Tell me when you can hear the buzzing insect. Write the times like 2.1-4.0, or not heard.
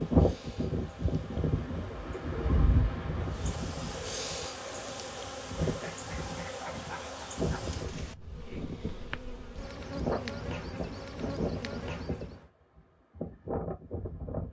0.0-12.5.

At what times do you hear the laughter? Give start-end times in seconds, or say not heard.
5.6-7.7.